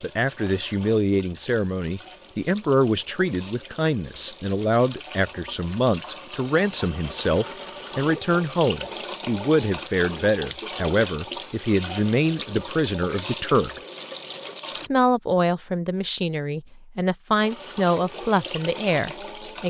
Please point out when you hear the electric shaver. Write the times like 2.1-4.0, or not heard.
not heard.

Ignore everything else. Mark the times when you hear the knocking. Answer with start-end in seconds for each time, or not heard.
not heard.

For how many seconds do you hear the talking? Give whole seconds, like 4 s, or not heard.
19 s.